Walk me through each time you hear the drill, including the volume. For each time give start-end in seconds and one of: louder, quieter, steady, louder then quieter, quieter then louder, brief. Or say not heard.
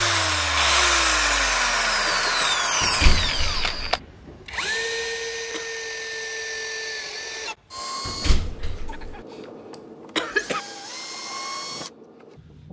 0.0-12.6 quieter.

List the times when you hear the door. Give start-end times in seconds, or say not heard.
2.8-3.9, 8.1-9.2.